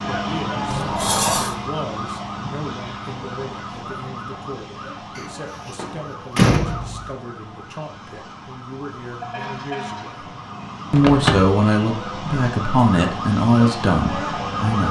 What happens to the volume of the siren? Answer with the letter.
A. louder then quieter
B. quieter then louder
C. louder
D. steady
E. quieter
B.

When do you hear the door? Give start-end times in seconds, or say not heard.
0.7-1.6, 5.2-7.1, 10.9-11.6.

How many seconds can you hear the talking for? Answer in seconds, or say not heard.
14 s.